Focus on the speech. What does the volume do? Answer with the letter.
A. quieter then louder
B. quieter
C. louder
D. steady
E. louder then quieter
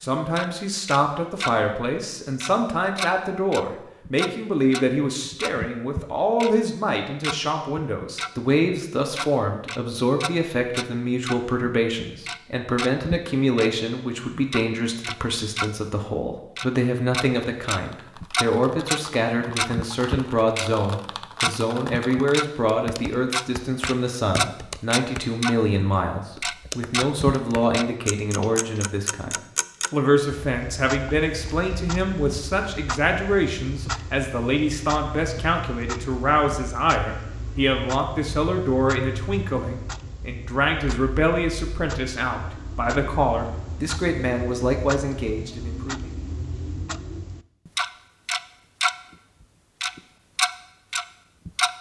D.